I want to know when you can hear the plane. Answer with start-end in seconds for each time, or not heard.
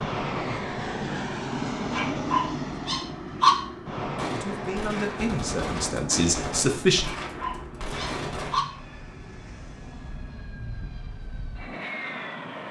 0.0-12.6.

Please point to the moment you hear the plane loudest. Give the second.
2 s.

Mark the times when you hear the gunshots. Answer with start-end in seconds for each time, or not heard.
4.2-8.6.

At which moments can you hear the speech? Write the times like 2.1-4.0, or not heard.
4.2-7.1.